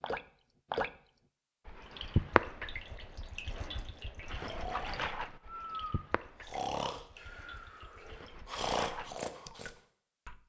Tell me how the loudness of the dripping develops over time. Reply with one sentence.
The loudness of the dripping goes down, then up.